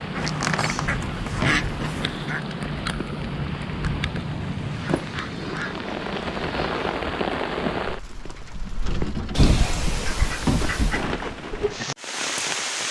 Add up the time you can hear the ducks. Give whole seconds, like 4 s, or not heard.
6 s.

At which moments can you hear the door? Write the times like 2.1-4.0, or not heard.
0.1-1.6, 4.8-6.0, 8.8-11.0.